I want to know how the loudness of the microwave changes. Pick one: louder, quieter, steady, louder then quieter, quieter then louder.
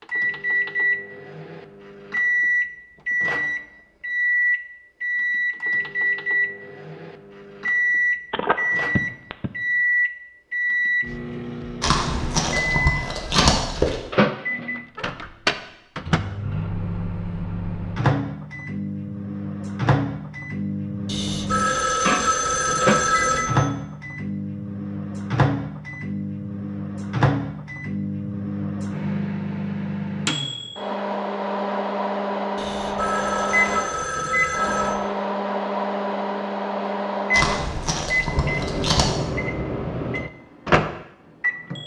steady.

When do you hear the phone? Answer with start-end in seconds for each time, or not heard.
8.3-9.5, 21.1-23.8, 32.5-35.1.